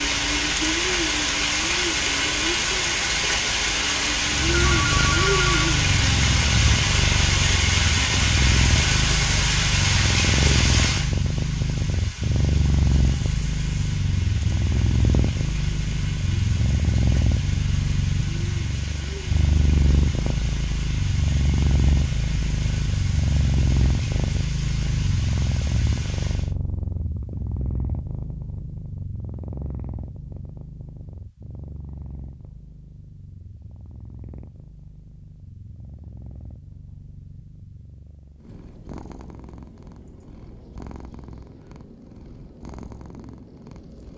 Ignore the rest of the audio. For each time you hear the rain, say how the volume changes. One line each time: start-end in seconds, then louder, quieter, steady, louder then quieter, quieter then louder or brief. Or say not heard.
0.0-26.6 quieter.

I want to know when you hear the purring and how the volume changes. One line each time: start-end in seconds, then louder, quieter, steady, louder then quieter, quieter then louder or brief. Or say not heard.
4.2-44.1 quieter.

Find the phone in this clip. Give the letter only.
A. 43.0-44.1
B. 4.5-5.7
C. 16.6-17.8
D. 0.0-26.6
B.